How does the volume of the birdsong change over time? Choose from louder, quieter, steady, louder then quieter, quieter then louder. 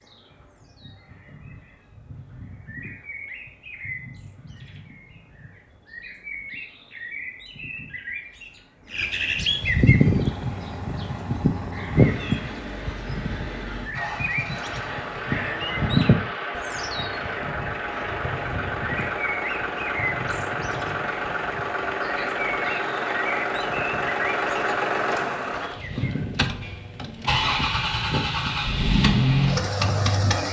louder then quieter.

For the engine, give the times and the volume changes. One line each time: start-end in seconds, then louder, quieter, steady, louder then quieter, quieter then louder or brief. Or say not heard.
9.8-30.4 louder.